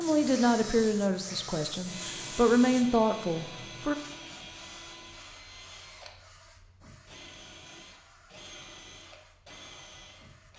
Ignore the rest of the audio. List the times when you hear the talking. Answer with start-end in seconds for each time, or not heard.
0.0-4.0.